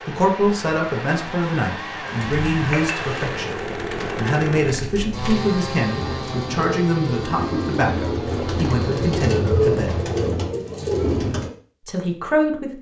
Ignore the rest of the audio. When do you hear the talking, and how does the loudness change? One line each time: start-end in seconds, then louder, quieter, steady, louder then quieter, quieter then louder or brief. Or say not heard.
0.1-10.0 steady
11.8-12.7 brief.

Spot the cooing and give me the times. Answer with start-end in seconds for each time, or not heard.
2.1-11.5.